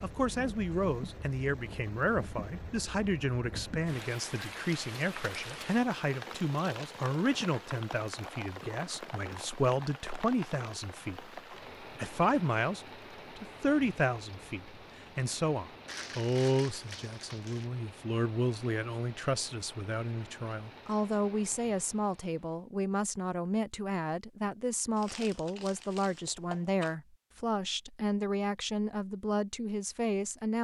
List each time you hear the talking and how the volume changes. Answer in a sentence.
The talking can be heard from 0.0 to 30.5 s, at a steady volume.